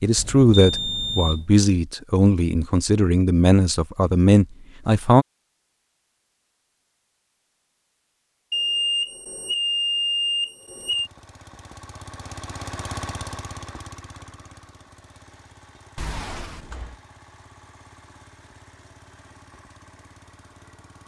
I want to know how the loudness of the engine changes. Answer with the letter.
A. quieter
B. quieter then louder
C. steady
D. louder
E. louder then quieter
A.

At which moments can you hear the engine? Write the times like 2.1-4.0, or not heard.
10.6-21.0.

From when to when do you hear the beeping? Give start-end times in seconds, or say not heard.
0.1-1.4, 8.5-11.1, 15.9-16.9.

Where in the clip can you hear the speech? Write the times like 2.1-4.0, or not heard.
0.0-5.2.